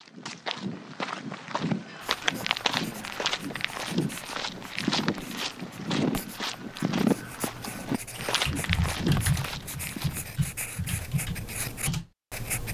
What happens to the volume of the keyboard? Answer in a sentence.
The loudness of the keyboard goes up, then down.